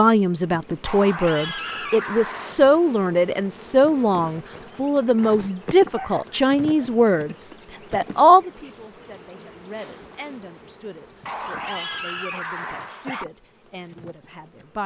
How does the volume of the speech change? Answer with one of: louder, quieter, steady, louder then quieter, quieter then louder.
quieter.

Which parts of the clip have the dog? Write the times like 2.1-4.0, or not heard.
0.8-2.6, 5.9-7.7, 11.2-13.2.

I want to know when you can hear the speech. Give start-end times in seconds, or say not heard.
0.0-14.8.